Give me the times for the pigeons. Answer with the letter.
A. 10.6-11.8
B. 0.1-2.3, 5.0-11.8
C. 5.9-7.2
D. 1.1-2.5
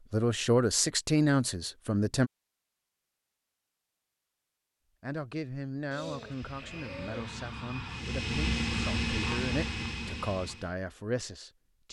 C.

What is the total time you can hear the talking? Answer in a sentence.
The talking can be heard for 9 seconds in total.